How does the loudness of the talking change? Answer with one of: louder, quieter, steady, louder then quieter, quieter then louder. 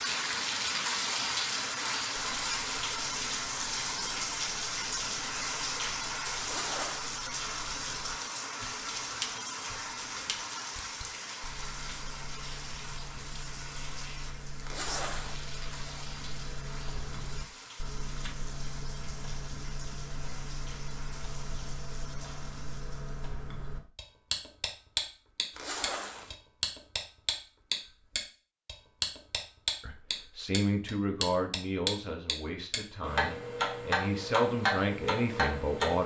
quieter then louder.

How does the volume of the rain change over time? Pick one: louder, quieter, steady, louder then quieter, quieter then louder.
quieter.